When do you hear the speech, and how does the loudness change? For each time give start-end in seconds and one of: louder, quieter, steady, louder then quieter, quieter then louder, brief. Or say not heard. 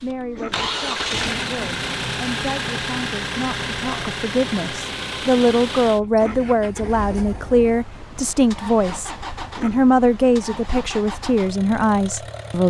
0.0-12.6 louder.